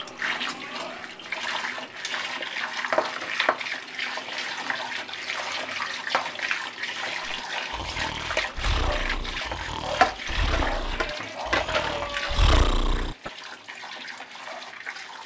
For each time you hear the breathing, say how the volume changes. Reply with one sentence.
The breathing can be heard from 7.2 to 13.3 s, getting louder.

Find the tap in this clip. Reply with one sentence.
The tap can be heard from 0.0 to 15.2 s.